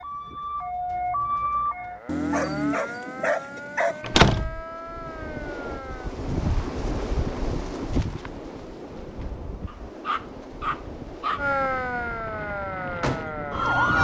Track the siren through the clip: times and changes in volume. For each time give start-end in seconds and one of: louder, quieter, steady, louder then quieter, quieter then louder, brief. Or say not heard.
0.0-6.2 quieter
11.3-14.0 brief.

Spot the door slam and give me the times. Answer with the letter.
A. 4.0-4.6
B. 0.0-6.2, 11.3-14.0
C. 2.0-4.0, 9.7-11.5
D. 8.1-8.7
A.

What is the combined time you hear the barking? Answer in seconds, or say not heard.
4 s.